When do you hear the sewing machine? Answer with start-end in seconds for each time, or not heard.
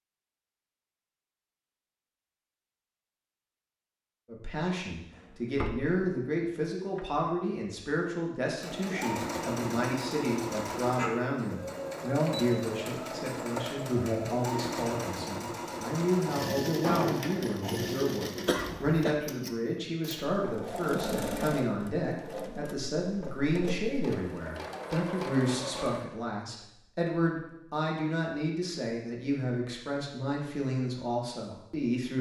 8.6-26.1.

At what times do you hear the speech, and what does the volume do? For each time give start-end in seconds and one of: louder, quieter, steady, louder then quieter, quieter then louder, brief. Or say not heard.
4.2-32.1 steady.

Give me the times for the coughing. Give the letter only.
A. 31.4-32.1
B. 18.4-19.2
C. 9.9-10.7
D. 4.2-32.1
B.